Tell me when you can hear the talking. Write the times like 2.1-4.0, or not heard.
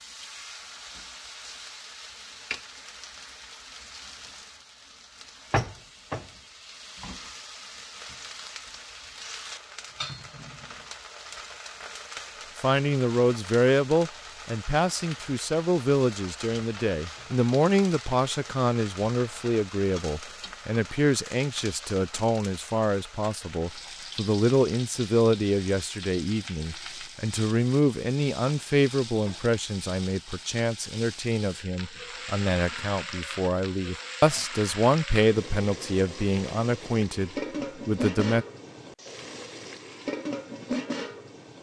12.6-38.5.